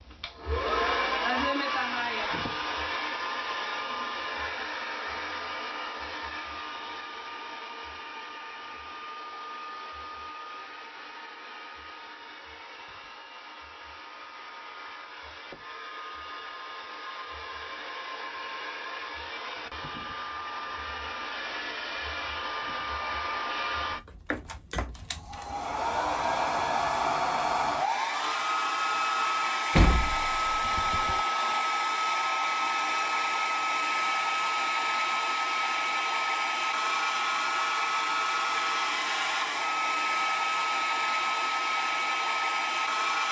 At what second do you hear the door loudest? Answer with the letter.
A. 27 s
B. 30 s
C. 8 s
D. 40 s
B.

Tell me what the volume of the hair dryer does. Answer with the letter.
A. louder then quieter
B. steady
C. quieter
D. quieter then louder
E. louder
D.